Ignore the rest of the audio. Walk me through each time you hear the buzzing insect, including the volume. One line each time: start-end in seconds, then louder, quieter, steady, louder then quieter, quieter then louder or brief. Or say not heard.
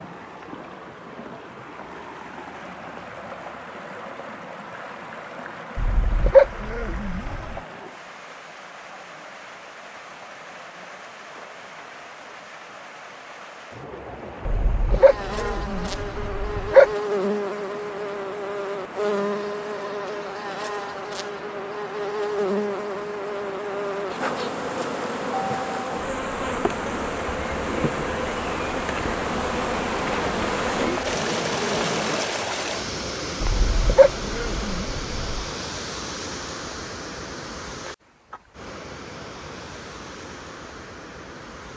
14.9-32.2 steady.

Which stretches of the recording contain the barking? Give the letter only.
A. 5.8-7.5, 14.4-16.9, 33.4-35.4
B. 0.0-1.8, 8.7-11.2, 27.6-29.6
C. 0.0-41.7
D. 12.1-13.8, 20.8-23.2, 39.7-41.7
A.